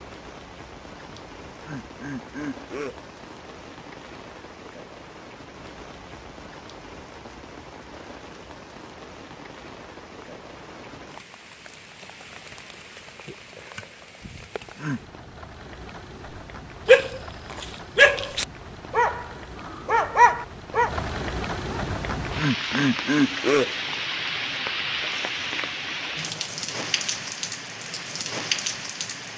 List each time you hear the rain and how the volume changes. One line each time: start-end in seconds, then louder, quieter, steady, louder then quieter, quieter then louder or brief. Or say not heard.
0.0-29.3 louder.